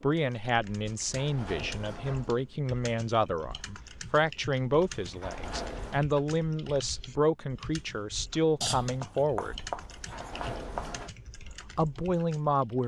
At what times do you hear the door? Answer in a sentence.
You can hear the door from 0.8 to 2.4 s, from 5.0 to 6.0 s and from 9.8 to 11.1 s.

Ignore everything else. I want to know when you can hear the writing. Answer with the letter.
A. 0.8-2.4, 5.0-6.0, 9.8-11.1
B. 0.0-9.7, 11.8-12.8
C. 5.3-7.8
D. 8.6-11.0
D.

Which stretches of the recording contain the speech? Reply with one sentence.
The speech can be heard from 0.0 to 9.7 s and from 11.8 to 12.8 s.